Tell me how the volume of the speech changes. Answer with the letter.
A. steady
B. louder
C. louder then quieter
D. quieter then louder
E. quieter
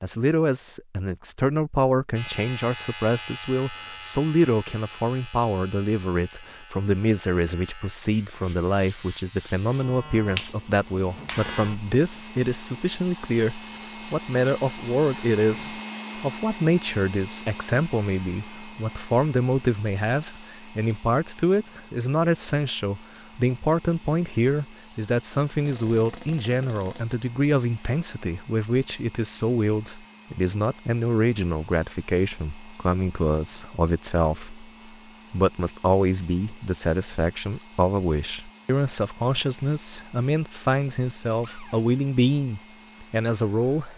A.